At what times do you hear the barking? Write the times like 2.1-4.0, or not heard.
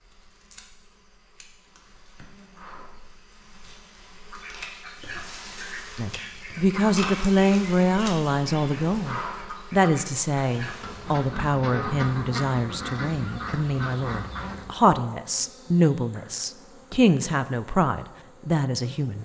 not heard.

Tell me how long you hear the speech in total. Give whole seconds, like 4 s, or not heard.
13 s.